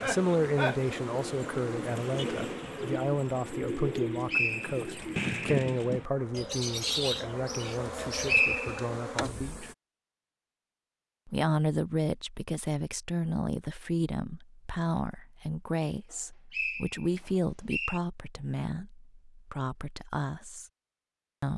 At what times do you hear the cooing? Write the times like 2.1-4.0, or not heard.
0.0-8.4.